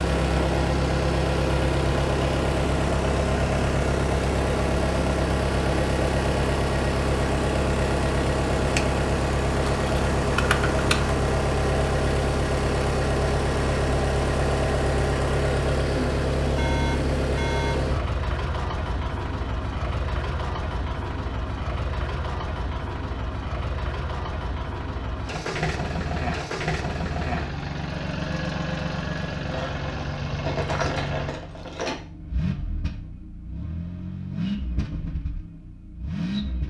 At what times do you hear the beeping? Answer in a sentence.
The beeping can be heard from 16.6 to 17.8 s.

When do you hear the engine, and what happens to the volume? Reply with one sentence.
You can hear the engine from 0.0 to 36.6 s, getting quieter.